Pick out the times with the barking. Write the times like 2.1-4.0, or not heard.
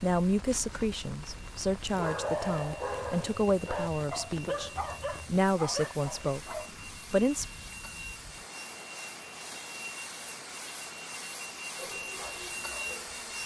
1.9-6.7, 11.8-13.2.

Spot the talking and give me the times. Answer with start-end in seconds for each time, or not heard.
0.0-7.5.